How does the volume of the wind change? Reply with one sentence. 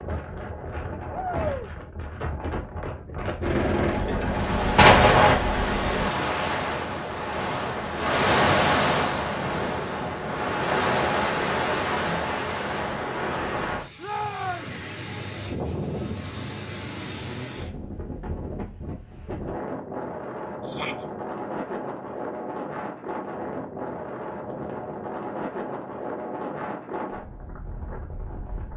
The loudness of the wind goes up, then down.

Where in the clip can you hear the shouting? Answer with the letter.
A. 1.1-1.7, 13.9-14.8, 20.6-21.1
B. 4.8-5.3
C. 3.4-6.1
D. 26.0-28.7
A.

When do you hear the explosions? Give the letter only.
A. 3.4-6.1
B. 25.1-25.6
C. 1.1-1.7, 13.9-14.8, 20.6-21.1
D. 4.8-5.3
D.